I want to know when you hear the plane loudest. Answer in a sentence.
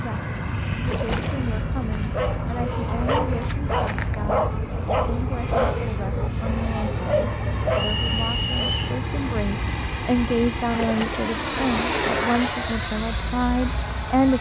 The loudest moment of the plane is at 12 seconds.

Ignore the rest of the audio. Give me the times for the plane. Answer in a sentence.
The plane can be heard from 0.0 to 14.3 s.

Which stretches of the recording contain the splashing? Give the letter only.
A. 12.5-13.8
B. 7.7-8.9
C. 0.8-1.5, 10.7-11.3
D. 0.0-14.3
C.